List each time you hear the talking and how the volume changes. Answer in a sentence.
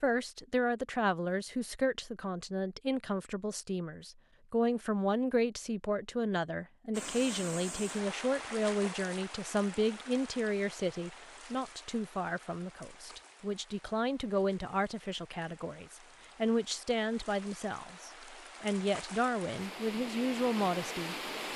You can hear the talking from 0.0 to 21.5 s, at a steady volume.